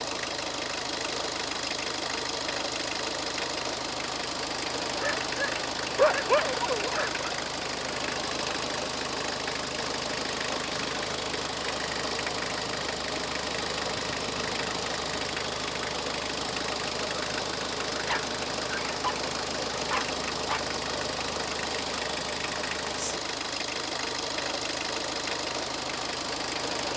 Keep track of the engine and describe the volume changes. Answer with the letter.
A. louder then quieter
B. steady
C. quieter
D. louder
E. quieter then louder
B.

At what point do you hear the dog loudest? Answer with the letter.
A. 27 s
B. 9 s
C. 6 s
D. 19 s
C.